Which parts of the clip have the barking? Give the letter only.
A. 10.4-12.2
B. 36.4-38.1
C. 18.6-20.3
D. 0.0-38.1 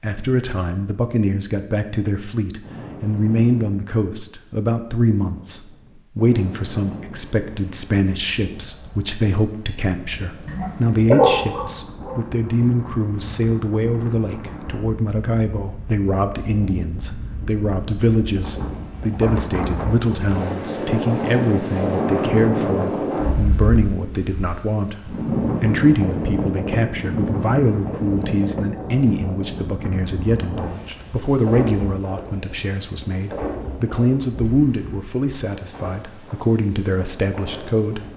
A.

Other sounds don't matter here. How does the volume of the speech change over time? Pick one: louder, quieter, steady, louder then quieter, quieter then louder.
steady.